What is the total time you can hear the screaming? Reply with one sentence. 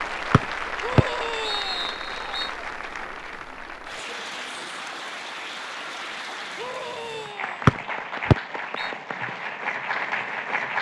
The screaming can be heard for 2 seconds in total.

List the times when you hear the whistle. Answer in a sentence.
You can hear the whistle from 0.3 to 2.5 s and from 7.7 to 8.9 s.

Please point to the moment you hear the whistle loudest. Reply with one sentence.
The loudest moment of the whistle is at 8 seconds.